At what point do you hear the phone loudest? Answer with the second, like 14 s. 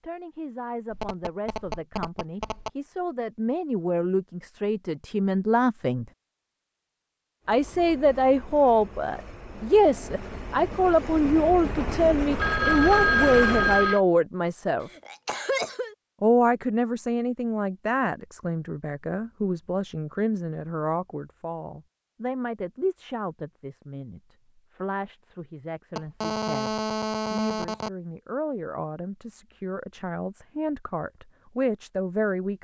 13 s.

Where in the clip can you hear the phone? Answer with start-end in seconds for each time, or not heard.
0.9-2.7, 12.3-14.0, 25.9-27.9.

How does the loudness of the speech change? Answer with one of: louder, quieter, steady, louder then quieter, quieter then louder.
louder then quieter.